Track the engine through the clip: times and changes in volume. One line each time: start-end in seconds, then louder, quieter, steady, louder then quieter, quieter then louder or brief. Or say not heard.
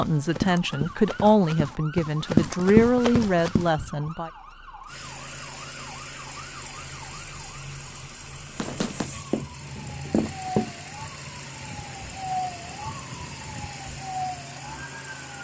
4.8-15.3 steady.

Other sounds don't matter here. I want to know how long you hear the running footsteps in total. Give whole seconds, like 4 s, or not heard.
6 s.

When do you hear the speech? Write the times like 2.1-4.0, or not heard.
0.0-4.3.